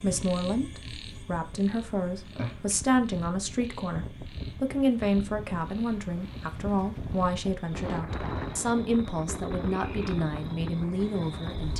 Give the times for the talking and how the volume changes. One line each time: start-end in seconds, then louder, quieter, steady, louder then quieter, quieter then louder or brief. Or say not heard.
0.0-11.7 steady.